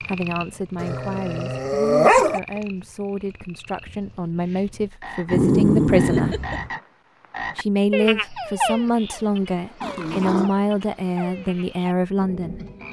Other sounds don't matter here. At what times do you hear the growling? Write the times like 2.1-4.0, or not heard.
0.8-2.4, 5.3-6.7, 9.8-10.5.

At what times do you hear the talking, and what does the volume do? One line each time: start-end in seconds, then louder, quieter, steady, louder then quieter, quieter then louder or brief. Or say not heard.
0.1-6.5 louder
7.5-12.6 steady.